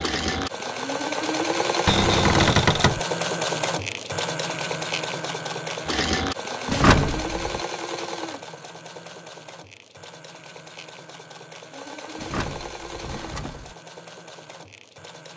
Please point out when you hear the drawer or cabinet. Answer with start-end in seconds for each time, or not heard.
1.9-3.0, 6.7-7.6, 12.2-13.8.